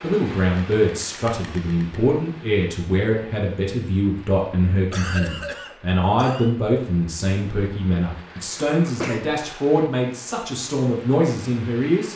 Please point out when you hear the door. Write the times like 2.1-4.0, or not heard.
not heard.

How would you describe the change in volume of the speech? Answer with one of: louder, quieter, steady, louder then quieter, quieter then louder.
steady.